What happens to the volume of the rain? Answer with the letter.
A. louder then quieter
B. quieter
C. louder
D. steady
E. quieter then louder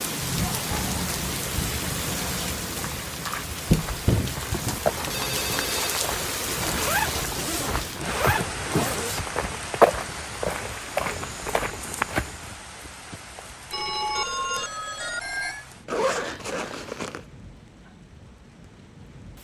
B.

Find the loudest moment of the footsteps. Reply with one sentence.
The loudest moment of the footsteps is at 10 seconds.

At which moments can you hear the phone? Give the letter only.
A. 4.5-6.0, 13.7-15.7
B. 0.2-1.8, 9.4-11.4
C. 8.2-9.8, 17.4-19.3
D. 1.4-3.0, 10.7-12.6
A.